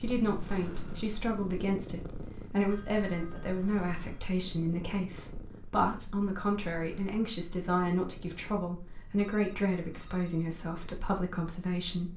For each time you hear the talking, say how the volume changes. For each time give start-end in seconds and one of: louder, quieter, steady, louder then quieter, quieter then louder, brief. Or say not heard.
0.0-12.1 steady.